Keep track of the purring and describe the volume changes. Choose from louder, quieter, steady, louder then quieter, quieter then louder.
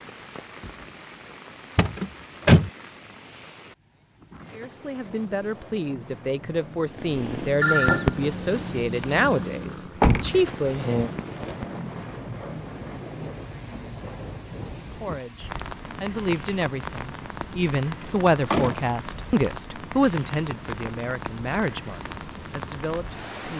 quieter then louder.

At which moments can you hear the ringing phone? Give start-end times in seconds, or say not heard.
7.6-9.2.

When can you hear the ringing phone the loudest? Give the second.
8 s.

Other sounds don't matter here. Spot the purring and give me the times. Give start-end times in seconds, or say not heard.
7.0-11.8.